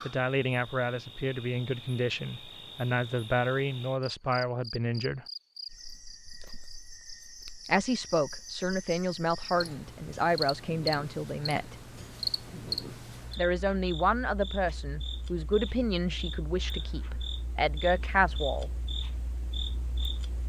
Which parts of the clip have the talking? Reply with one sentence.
The talking can be heard from 0.0 to 5.2 s, from 7.7 to 11.8 s and from 13.3 to 18.7 s.